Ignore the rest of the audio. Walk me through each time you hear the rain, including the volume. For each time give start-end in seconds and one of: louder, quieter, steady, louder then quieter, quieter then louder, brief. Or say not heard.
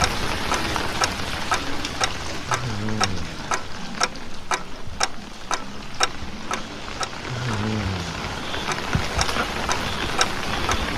0.0-10.9 quieter then louder.